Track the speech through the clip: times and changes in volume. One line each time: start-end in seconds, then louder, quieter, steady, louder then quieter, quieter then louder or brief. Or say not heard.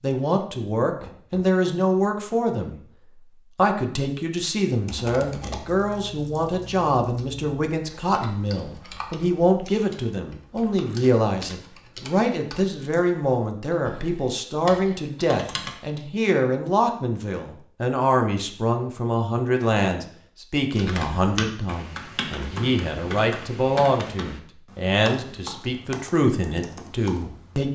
0.0-2.8 brief
3.5-27.7 steady.